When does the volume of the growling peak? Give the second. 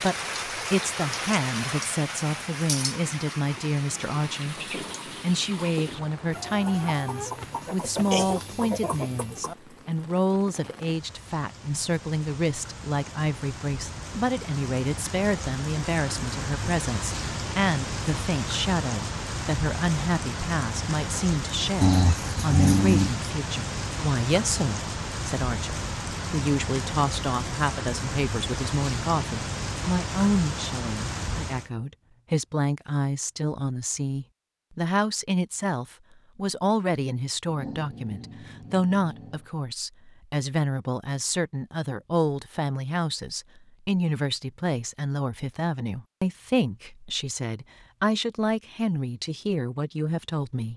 23 s.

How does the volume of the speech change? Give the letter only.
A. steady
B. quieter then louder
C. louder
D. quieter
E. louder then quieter
A.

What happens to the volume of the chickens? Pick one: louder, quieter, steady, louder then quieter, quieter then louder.
louder.